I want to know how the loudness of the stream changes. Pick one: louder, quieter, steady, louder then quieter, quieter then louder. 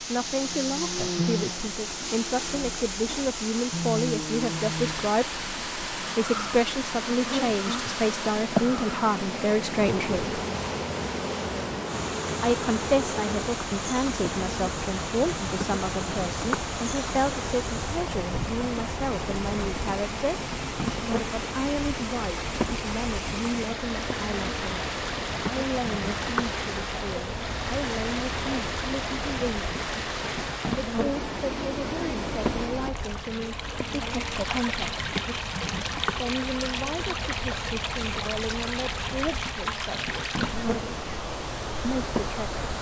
steady.